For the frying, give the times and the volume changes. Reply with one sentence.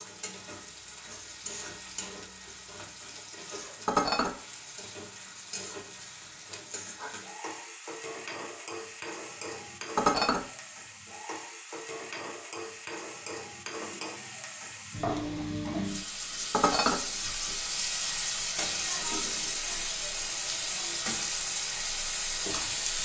You can hear the frying from 0.0 to 23.0 s, getting louder.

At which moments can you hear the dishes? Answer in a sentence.
The dishes can be heard from 3.9 to 4.3 s, from 9.9 to 10.4 s and from 16.5 to 16.9 s.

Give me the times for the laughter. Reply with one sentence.
The laughter can't be heard in this clip.